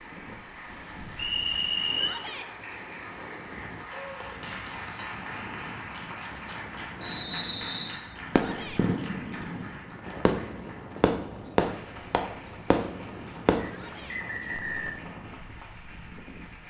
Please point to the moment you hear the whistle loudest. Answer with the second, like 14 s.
2 s.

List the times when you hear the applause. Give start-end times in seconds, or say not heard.
0.0-16.6.